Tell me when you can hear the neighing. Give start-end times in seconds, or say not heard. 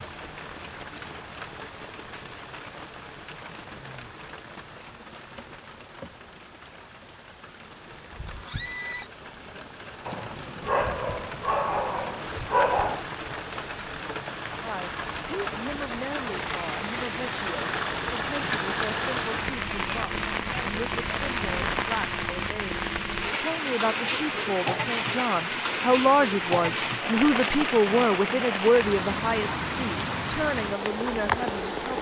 8.2-9.1.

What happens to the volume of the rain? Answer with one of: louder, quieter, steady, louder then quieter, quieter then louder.
louder.